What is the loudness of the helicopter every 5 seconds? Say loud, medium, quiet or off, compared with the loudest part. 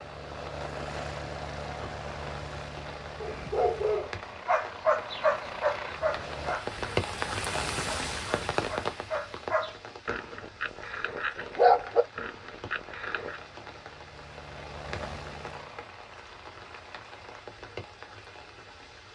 loud, loud, medium, medium.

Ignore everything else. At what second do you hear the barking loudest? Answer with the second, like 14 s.
12 s.